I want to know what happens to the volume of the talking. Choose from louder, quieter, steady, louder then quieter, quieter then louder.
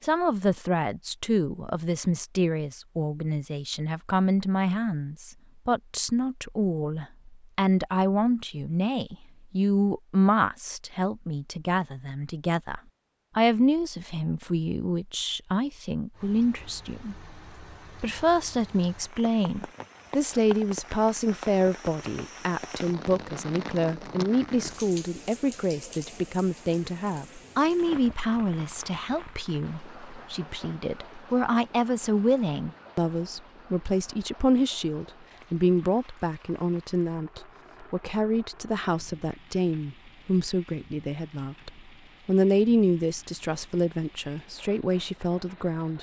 steady.